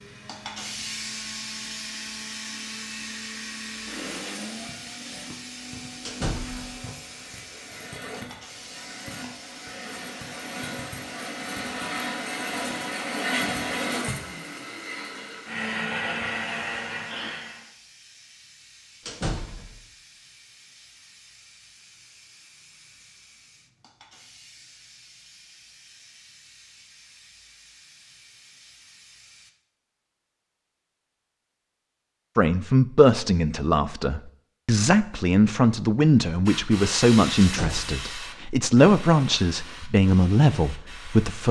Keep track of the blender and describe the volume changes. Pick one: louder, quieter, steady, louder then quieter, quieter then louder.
louder.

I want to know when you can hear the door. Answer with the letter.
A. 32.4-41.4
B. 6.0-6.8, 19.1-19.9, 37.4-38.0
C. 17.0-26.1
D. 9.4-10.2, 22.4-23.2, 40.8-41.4
B.